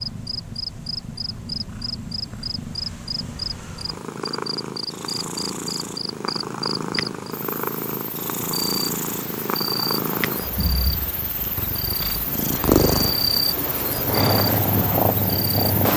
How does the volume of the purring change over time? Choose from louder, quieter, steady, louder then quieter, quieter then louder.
louder.